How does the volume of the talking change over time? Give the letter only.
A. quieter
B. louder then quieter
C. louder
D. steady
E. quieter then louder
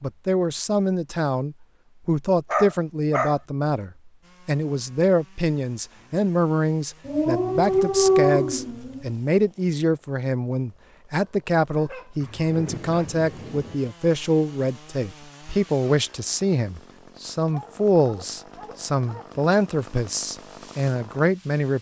D.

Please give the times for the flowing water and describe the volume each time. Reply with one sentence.
The flowing water can't be heard in this clip.